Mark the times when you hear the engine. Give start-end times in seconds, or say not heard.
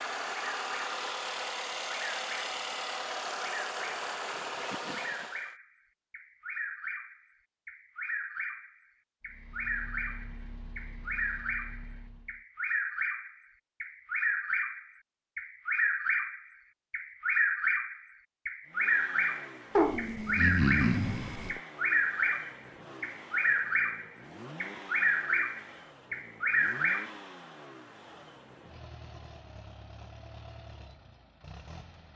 0.0-5.5, 9.2-12.4, 18.6-32.1.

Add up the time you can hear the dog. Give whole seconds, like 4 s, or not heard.
2 s.